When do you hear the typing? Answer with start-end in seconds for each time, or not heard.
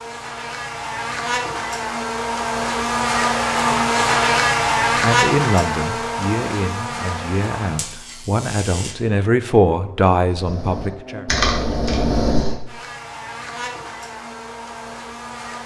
10.3-12.6.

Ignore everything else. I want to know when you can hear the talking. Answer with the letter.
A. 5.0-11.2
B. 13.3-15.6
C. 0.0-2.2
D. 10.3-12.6
A.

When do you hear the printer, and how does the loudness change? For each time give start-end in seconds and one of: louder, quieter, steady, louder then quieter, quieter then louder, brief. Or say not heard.
not heard.